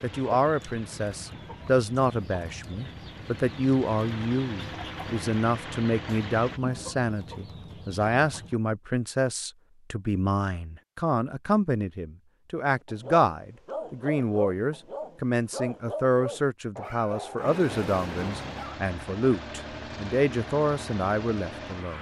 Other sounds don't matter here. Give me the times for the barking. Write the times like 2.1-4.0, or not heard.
12.8-18.8.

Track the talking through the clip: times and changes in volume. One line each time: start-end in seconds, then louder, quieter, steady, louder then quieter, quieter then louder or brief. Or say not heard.
0.0-21.9 steady.